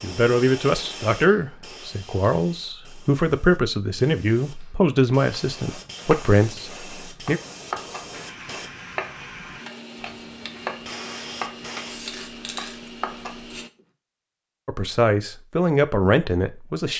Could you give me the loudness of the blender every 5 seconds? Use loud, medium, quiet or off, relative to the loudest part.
off, loud, loud, off.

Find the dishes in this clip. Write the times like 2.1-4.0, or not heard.
not heard.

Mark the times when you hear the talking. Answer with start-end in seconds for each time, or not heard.
0.0-7.4, 14.7-16.9.